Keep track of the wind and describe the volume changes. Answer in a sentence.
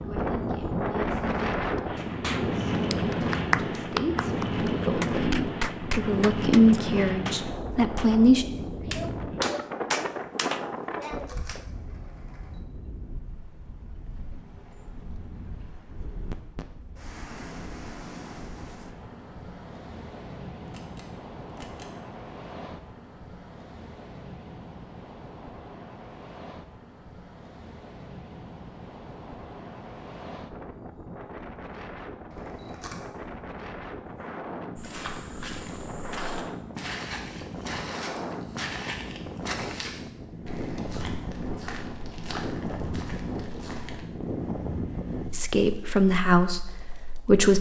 The loudness of the wind goes down, then up.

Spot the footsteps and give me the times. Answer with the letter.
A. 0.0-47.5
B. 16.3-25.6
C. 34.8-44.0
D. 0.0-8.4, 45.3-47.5
C.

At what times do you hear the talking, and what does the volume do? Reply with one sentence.
You can hear the talking from 0.0 to 8.4 s, getting louder; and briefly from 45.3 to 47.5 s.